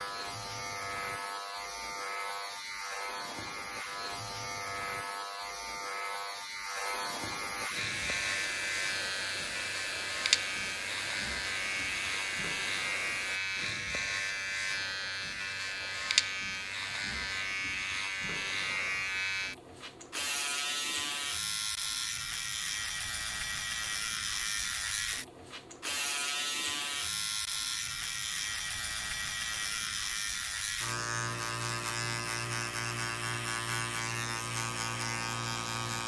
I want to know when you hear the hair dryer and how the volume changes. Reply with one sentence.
You can hear the hair dryer from 7.8 to 13.4 s, at a steady volume.